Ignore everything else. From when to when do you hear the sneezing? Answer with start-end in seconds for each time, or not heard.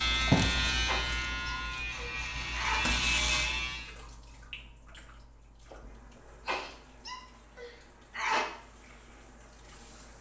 0.8-2.8, 6.5-8.4.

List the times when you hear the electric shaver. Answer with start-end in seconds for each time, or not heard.
0.0-3.9.